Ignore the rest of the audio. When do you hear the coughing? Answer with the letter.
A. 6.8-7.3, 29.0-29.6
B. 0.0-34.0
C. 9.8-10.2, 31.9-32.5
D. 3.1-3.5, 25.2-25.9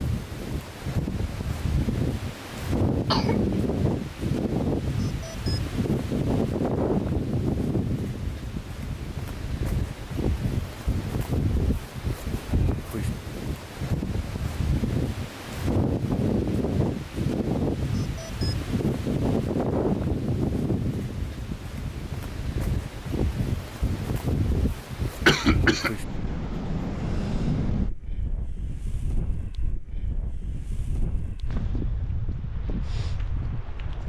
D.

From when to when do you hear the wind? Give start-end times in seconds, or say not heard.
0.0-34.0.